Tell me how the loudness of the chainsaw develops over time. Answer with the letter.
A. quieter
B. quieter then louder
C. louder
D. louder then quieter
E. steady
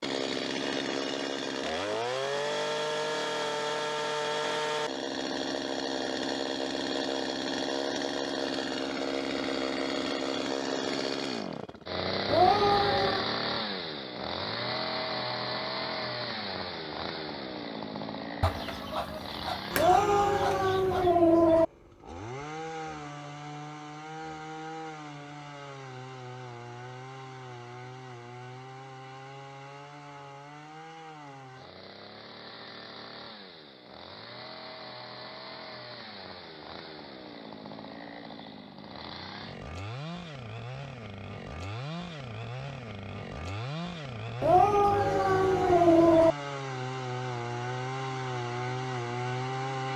B.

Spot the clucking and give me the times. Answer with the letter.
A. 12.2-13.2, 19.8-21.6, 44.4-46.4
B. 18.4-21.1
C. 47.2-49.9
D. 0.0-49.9
B.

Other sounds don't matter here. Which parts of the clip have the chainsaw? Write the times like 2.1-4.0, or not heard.
0.0-49.9.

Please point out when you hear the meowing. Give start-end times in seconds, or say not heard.
12.2-13.2, 19.8-21.6, 44.4-46.4.